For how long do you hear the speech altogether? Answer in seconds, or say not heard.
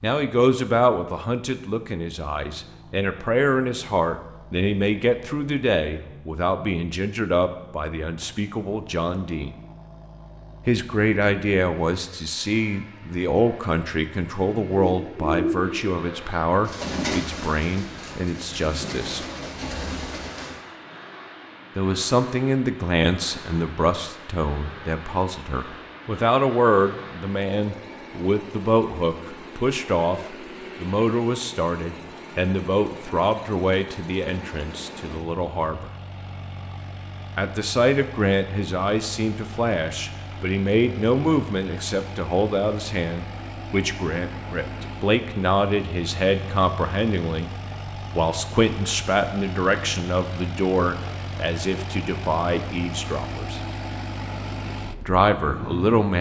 50 s.